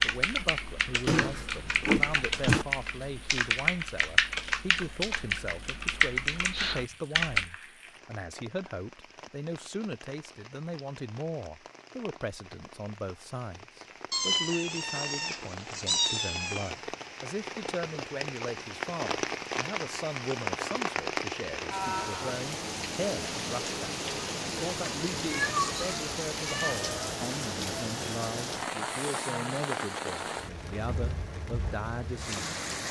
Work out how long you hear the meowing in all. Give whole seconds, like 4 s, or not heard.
6 s.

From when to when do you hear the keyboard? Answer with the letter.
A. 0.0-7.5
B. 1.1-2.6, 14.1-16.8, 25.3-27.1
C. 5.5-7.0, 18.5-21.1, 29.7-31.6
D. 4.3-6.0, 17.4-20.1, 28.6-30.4
A.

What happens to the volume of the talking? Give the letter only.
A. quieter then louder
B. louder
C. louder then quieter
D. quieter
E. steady
E.